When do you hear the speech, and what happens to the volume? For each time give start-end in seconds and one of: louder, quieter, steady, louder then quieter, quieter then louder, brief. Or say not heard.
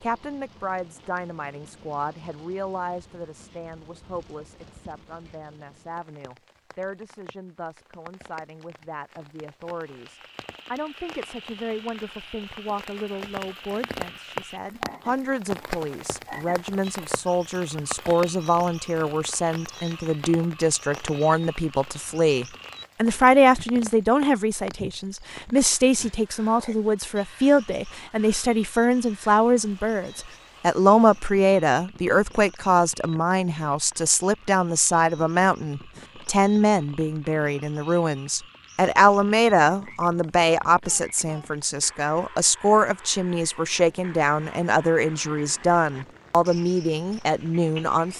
0.0-48.1 louder.